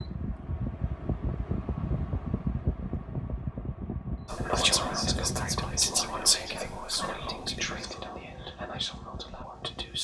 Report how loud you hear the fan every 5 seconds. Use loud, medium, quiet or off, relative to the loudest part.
loud, medium.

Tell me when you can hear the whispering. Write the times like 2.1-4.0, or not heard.
4.2-9.9.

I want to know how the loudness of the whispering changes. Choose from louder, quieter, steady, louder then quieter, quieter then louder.
quieter.